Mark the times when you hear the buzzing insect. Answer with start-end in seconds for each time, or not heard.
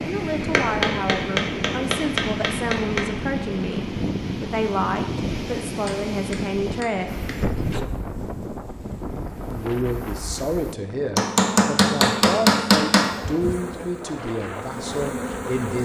7.0-10.8, 13.1-15.8.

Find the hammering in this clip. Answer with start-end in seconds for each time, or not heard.
0.4-3.0, 5.8-7.5, 11.2-13.2.